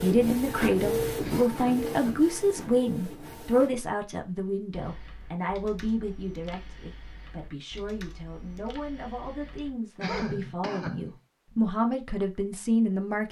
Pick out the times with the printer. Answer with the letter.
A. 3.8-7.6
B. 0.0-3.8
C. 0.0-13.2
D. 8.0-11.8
B.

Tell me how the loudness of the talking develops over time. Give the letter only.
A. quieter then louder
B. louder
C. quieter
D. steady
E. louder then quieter
A.